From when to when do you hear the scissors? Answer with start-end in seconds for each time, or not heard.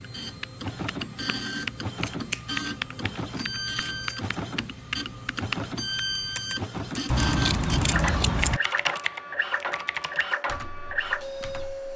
2.0-4.3, 7.1-8.6.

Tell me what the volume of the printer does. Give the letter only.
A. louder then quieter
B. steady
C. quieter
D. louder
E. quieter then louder
B.